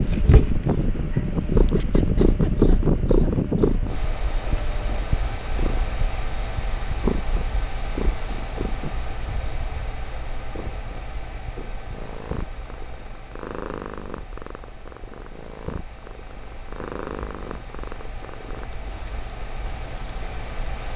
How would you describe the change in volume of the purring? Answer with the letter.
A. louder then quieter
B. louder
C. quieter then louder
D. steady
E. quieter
E.